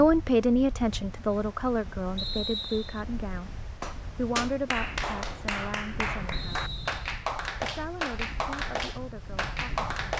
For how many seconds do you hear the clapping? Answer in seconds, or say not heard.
6 s.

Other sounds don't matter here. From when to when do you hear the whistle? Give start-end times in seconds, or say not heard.
2.1-3.0, 6.3-6.9.